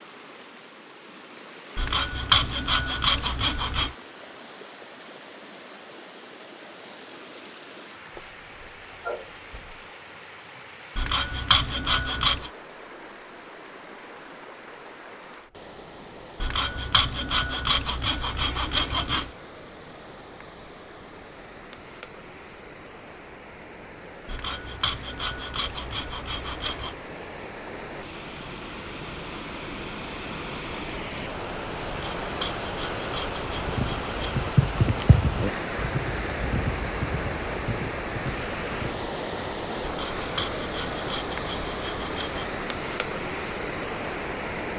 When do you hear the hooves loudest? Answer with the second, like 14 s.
35 s.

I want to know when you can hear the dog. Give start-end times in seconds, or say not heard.
8.2-9.8.